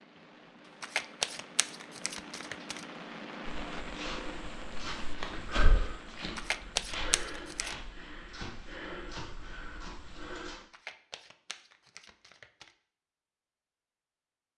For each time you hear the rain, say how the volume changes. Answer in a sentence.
You can hear the rain from 0.0 to 10.7 s, getting louder then quieter.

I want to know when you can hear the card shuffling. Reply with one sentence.
You can hear the card shuffling from 0.8 to 2.9 s, from 6.3 to 7.8 s and from 10.7 to 12.7 s.